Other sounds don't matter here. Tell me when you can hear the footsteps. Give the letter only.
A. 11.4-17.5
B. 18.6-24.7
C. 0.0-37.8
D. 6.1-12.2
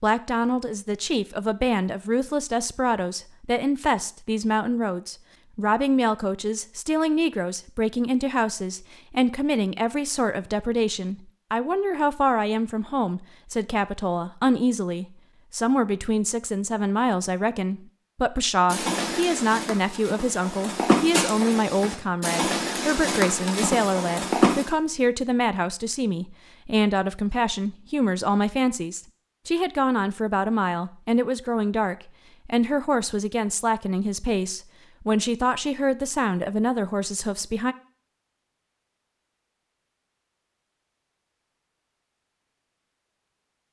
B.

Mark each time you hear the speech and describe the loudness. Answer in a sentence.
You can hear the speech from 0.0 to 37.8 s, at a steady volume.